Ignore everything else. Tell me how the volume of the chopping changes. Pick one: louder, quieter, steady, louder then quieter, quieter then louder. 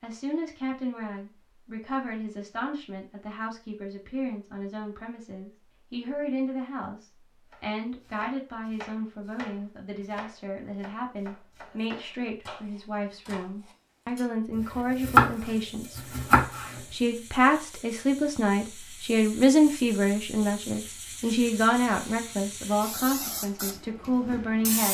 louder.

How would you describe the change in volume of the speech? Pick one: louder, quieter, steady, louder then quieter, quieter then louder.
louder.